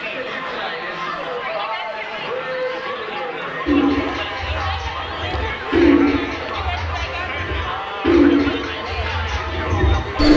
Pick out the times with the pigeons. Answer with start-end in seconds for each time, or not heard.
3.6-10.3.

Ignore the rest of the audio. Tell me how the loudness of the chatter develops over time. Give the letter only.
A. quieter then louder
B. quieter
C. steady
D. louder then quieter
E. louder
C.